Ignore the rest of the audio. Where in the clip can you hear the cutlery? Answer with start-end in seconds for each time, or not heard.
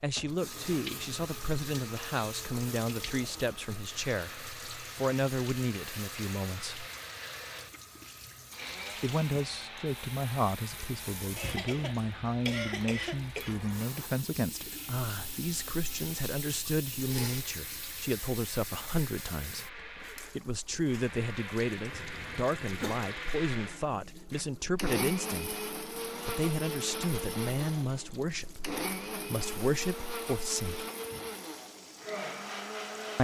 not heard.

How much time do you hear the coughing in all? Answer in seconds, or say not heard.
4 s.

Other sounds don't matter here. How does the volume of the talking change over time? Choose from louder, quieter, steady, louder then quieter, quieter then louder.
steady.